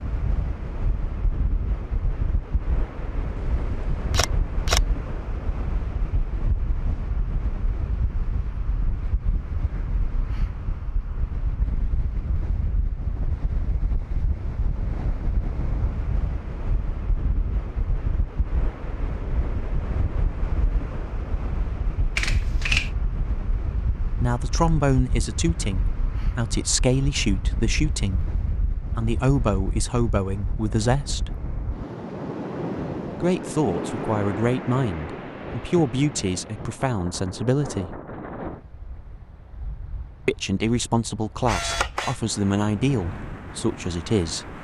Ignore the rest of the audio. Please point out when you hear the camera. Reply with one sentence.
You can hear the camera from 3.4 to 4.8 s, from 22.1 to 22.9 s and from 41.5 to 42.2 s.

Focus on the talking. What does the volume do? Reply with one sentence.
The volume of the talking stays about the same.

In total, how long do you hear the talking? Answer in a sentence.
The talking can be heard for 16 seconds in total.